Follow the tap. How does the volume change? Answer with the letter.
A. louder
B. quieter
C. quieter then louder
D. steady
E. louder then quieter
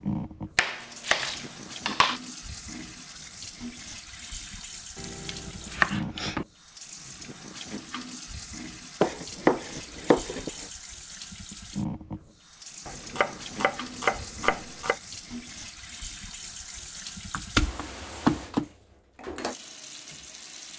D.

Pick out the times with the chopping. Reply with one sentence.
You can hear the chopping from 0.6 to 2.2 s, from 5.0 to 6.5 s, from 9.0 to 10.7 s, from 12.8 to 14.9 s and from 17.3 to 18.6 s.